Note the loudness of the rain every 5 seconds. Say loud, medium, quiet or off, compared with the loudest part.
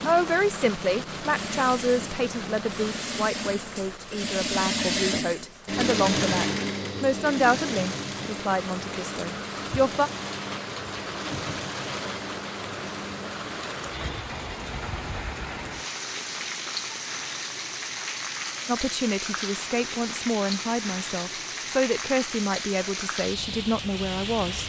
loud, medium, loud, loud, loud.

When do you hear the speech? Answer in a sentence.
You can hear the speech from 0.1 to 10.1 s and from 18.6 to 24.6 s.